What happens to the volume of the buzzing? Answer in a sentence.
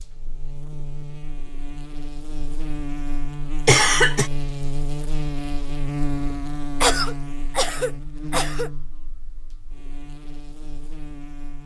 The volume of the buzzing goes up, then down.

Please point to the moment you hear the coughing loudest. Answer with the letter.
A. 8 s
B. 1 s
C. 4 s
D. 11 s
C.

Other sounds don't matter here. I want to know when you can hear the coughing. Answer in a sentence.
The coughing can be heard from 3.6 to 4.3 s and from 6.8 to 8.7 s.